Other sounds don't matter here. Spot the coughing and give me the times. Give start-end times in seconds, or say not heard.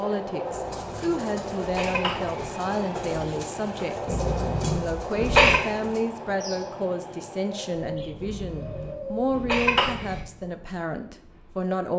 0.5-2.5, 4.0-5.6, 8.2-10.2.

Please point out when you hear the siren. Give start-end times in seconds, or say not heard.
not heard.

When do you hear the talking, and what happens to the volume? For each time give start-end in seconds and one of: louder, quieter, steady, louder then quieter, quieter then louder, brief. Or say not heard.
0.0-11.9 steady.